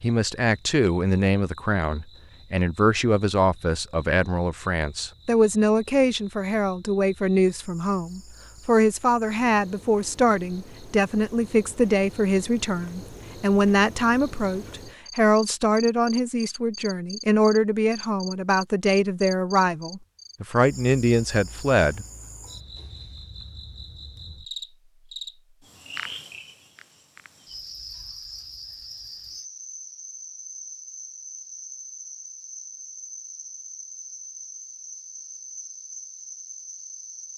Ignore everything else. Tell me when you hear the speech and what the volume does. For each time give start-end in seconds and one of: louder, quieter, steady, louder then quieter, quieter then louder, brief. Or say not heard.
0.0-22.1 steady.